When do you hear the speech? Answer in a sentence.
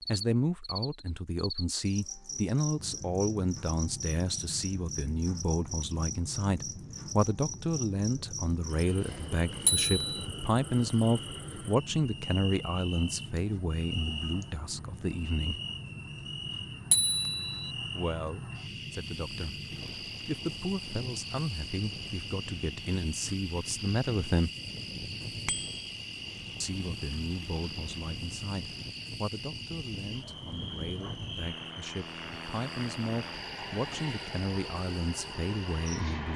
The speech can be heard from 0.1 to 15.6 s, from 17.9 to 24.5 s and from 26.6 to 36.3 s.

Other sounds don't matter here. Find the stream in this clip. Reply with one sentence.
You can't hear the stream here.